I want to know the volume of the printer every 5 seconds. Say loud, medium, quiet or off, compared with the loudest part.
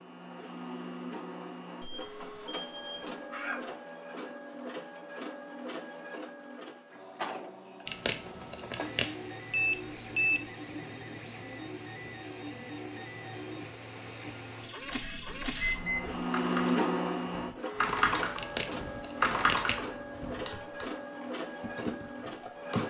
medium, medium, medium, loud, medium.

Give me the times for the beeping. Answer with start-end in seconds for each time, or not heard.
1.8-3.6, 9.5-10.4, 15.6-16.2.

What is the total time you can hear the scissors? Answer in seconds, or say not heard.
3 s.